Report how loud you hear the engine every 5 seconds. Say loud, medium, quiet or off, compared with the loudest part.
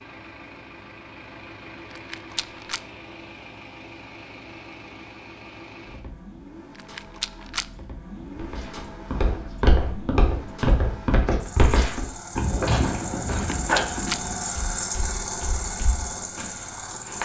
medium, medium, loud, loud.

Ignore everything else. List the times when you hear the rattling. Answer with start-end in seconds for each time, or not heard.
1.9-2.8, 6.8-7.7, 13.3-14.2.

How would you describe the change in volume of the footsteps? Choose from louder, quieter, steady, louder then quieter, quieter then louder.
quieter.